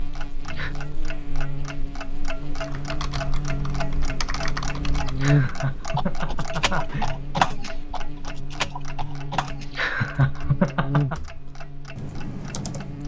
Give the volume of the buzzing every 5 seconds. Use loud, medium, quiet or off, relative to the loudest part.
medium, loud, loud.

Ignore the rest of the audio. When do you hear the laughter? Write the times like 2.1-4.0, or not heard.
0.1-0.8, 5.2-7.1, 9.7-11.2.